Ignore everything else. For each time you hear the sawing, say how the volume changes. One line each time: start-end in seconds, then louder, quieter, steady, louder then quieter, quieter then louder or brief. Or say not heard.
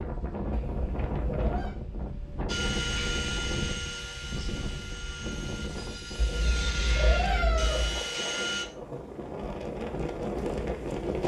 2.5-8.7 quieter then louder.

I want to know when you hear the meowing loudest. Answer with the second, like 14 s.
7 s.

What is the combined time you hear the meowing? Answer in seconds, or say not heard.
3 s.